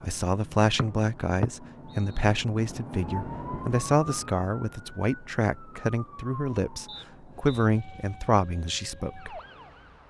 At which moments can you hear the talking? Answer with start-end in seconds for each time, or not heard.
0.0-9.4.